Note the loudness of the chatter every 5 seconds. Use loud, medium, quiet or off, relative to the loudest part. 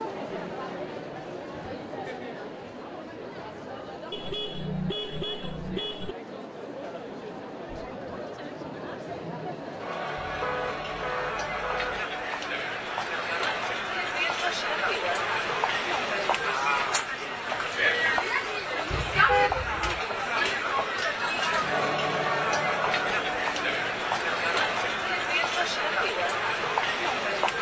medium, medium, loud, loud, loud, loud.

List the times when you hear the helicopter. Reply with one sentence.
You can't hear the helicopter here.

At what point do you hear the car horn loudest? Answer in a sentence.
The volume of the car horn peaks at 19 seconds.